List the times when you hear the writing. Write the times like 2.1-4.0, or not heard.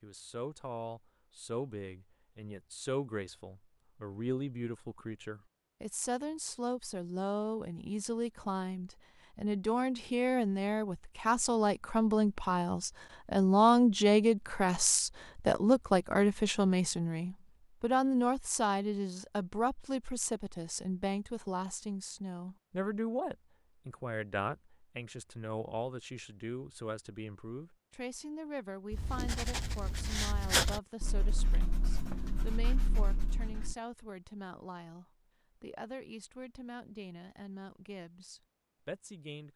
28.9-33.8.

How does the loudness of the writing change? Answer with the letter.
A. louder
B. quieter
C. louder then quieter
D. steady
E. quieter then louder
C.